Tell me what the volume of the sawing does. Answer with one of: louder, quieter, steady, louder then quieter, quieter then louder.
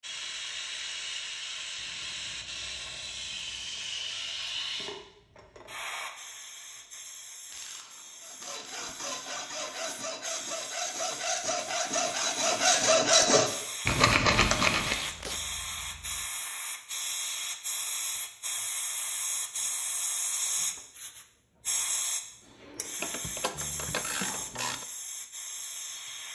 louder.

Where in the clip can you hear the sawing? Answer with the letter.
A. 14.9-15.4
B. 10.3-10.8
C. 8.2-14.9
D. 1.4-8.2
C.